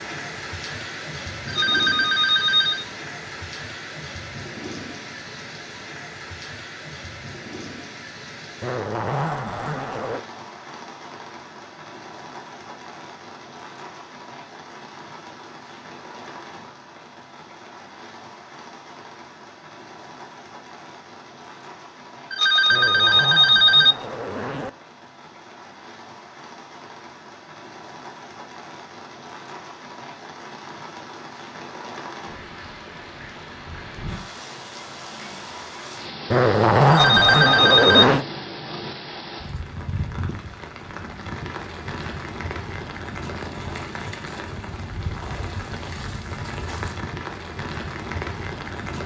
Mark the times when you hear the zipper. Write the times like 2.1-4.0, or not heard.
8.6-10.2, 22.7-24.7, 36.3-38.2.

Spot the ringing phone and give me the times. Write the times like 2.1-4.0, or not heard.
1.4-2.9, 22.3-23.9, 36.9-38.0.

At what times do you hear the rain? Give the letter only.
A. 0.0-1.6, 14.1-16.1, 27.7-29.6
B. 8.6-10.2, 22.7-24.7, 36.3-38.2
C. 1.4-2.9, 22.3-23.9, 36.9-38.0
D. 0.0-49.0
D.